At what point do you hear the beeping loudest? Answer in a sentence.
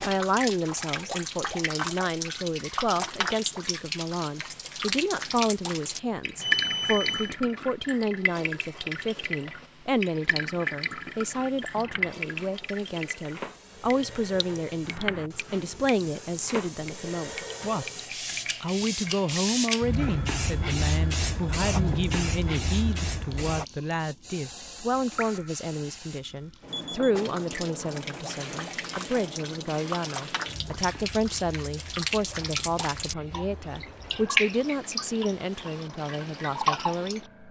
The volume of the beeping peaks at 7 seconds.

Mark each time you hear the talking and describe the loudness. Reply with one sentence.
The talking can be heard from 0.0 to 17.9 s, at a steady volume; and from 18.6 to 37.4 s, at a steady volume.